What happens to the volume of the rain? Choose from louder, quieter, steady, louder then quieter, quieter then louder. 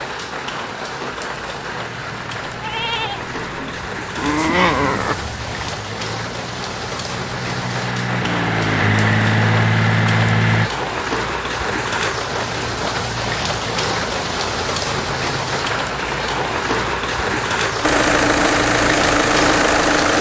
louder.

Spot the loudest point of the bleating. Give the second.
5 s.